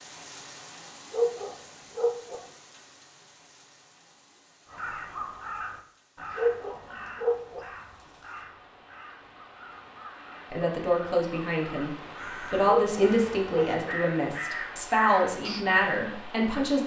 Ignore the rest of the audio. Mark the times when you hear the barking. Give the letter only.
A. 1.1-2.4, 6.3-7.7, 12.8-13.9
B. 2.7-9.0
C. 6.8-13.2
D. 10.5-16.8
A.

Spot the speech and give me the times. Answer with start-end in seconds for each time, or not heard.
10.5-16.8.